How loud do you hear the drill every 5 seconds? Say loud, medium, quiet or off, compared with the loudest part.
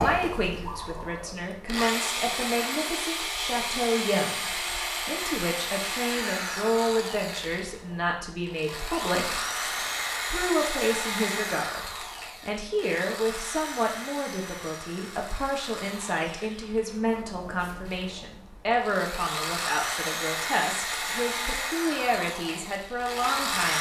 loud, loud, loud, medium, loud.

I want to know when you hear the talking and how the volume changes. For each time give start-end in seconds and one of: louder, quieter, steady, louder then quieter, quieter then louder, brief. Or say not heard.
0.0-23.7 steady.